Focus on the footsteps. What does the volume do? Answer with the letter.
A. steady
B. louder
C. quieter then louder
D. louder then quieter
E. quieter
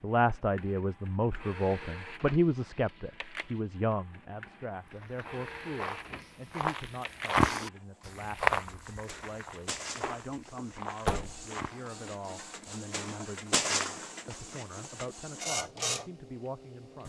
D.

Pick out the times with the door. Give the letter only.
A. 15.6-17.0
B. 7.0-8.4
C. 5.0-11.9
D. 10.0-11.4
D.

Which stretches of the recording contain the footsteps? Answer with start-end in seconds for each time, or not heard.
5.0-11.9.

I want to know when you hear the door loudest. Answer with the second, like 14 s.
11 s.